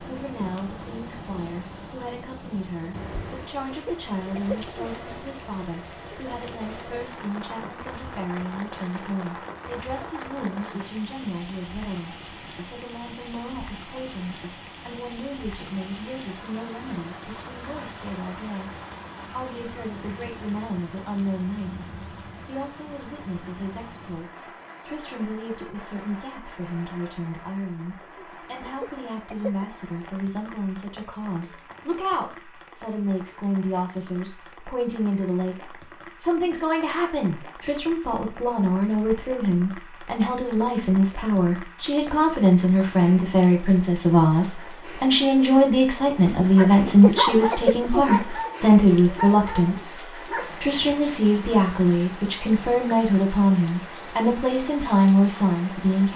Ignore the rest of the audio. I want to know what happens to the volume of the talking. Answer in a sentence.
The volume of the talking goes up.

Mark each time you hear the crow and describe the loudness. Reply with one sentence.
The crow can't be heard in this clip.